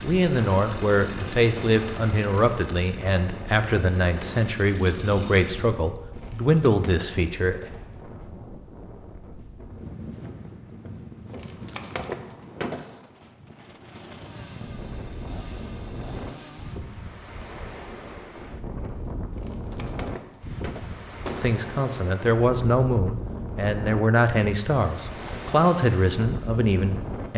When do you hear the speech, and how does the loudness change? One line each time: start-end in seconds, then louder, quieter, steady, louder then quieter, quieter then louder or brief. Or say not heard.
0.0-7.7 steady
21.4-27.3 steady.